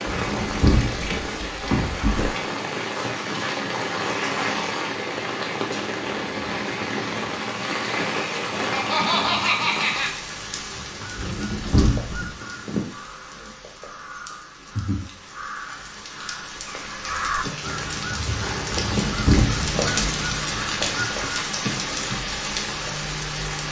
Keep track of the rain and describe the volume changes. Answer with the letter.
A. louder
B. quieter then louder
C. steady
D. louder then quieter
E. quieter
B.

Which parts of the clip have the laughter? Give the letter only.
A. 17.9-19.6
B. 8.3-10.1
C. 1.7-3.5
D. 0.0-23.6
B.